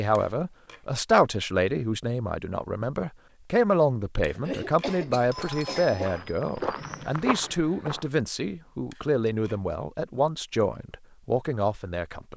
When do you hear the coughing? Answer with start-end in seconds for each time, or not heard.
4.4-6.2.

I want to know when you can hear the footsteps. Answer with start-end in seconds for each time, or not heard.
5.2-8.1.